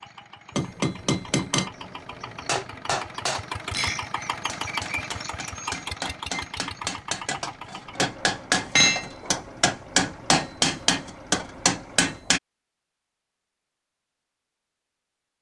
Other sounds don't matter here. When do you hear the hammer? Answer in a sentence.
You can hear the hammer from 0.6 to 12.4 s.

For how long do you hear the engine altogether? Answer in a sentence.
You can hear the engine for 12 seconds altogether.